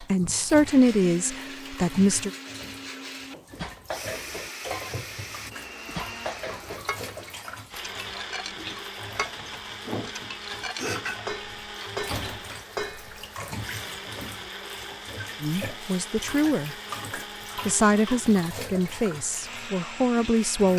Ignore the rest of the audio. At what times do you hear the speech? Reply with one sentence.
You can hear the speech from 0.0 to 2.3 s, from 15.4 to 16.8 s and from 17.6 to 20.7 s.